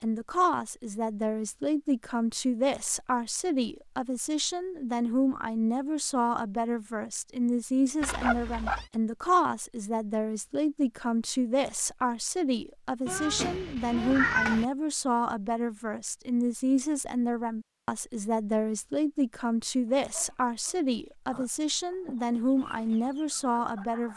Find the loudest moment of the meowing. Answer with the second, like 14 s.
14 s.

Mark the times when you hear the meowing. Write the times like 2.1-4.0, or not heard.
8.0-8.8, 13.1-14.7.